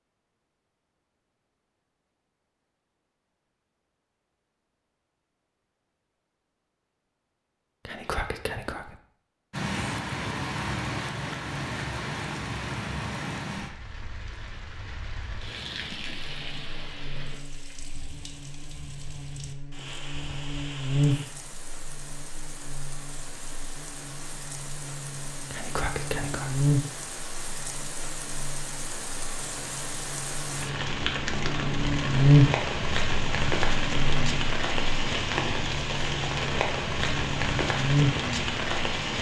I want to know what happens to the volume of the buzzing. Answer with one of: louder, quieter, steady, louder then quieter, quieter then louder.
louder then quieter.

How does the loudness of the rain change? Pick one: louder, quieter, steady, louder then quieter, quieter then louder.
quieter then louder.